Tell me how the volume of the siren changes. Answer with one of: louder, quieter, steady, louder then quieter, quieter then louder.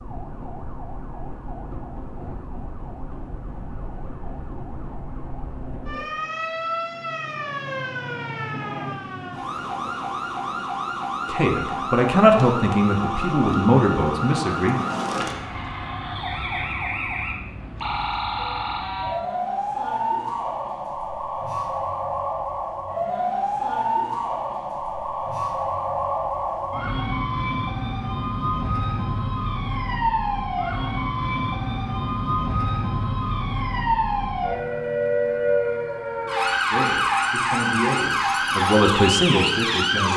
louder.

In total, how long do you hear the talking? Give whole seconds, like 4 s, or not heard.
7 s.